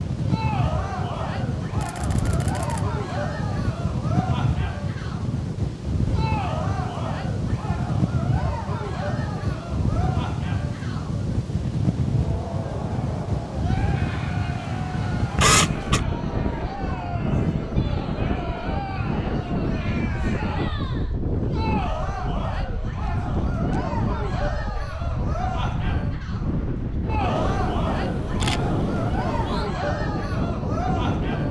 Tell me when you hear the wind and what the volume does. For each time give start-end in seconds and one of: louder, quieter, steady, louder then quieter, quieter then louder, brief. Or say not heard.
0.0-31.4 steady.